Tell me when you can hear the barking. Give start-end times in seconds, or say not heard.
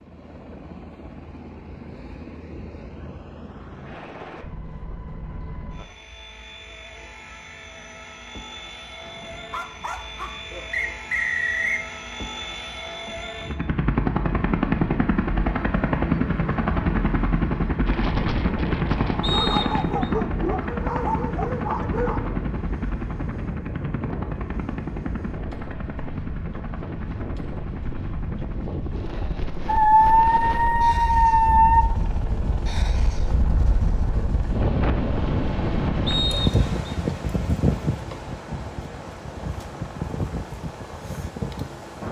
9.1-10.7, 19.2-22.2, 29.6-31.9.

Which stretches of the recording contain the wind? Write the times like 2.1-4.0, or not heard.
17.9-42.0.